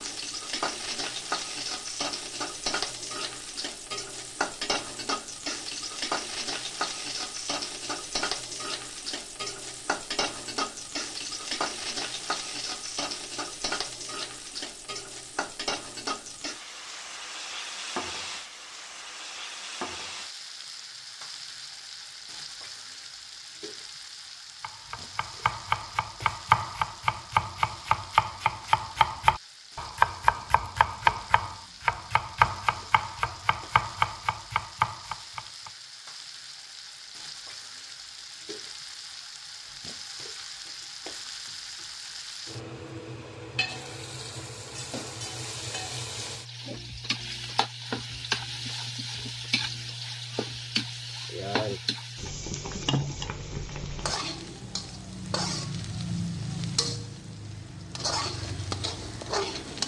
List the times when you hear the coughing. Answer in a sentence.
The coughing can't be heard in this clip.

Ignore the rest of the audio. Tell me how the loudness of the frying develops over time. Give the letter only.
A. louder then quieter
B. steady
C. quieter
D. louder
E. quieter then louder
E.